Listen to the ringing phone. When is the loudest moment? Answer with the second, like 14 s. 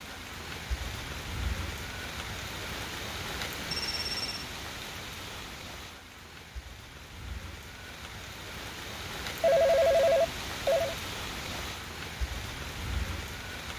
10 s.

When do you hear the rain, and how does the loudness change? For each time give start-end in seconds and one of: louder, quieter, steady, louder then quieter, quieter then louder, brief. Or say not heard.
0.0-13.7 quieter then louder.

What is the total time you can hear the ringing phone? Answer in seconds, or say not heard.
2 s.